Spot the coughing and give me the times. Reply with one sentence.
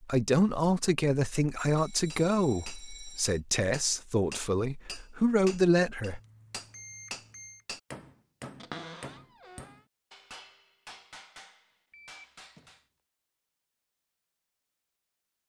You can't hear the coughing here.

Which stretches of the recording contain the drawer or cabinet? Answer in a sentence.
You can hear the drawer or cabinet from 8.6 to 9.8 s.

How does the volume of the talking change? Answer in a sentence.
The volume of the talking goes down, then up.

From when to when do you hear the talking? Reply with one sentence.
You can hear the talking from 0.0 to 6.2 s.